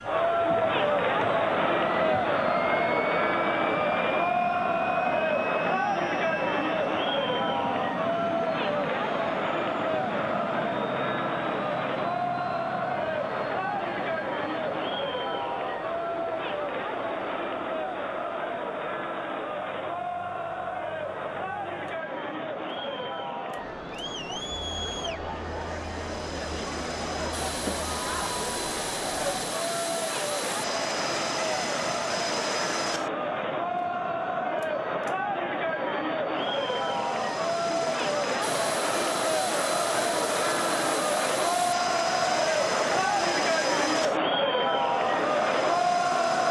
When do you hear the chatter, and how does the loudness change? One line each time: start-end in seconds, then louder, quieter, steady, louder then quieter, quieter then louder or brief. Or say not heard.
0.0-46.4 quieter then louder.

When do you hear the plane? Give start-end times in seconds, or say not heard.
0.0-46.4.